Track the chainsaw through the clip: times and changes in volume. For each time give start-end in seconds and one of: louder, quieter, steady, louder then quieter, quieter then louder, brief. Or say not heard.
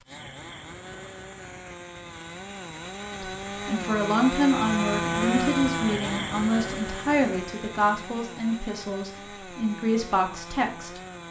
0.0-11.2 louder then quieter.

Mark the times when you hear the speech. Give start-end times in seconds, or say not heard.
3.2-11.0.